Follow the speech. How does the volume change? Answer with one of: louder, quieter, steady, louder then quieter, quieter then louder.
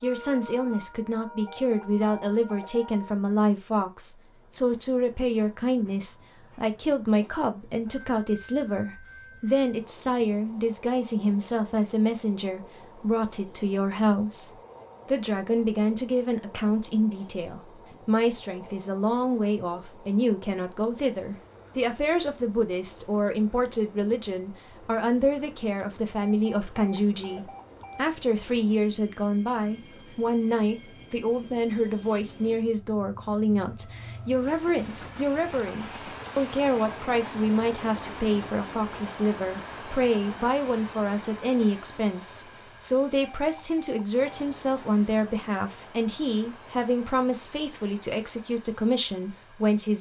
steady.